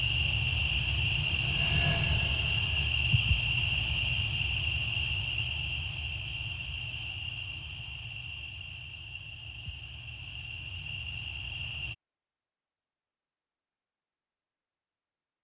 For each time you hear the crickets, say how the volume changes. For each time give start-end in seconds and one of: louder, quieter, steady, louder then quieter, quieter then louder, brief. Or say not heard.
0.0-11.9 quieter.